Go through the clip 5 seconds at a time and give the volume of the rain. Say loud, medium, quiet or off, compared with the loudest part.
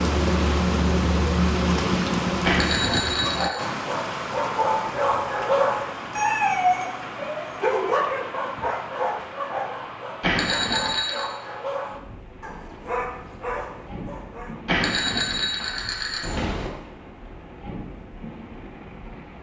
loud, medium, quiet, quiet.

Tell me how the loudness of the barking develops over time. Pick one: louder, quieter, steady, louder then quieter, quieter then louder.
quieter.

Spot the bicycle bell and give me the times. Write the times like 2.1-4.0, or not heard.
2.4-3.5, 10.2-11.2, 14.7-16.7.